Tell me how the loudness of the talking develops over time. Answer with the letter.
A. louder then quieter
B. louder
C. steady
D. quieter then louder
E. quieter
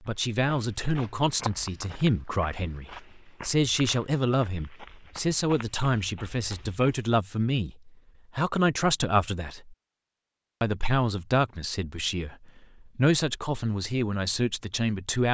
C.